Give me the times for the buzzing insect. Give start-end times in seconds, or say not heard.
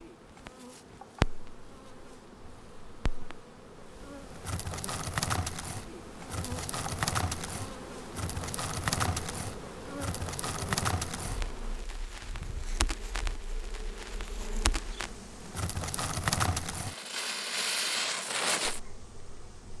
0.0-19.7.